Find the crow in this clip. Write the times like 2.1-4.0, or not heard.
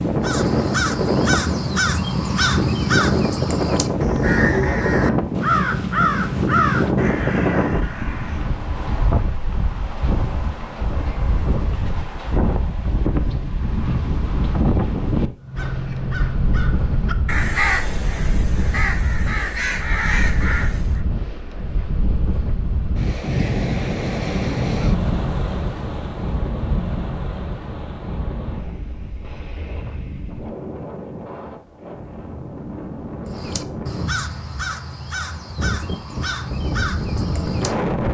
0.2-8.4, 15.4-21.0, 33.2-38.1.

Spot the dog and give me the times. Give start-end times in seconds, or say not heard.
not heard.